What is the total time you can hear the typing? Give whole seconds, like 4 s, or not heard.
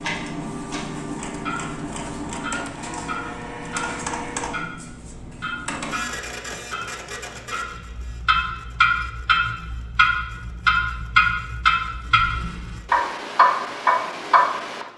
not heard.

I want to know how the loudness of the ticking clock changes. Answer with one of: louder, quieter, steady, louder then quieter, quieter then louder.
louder.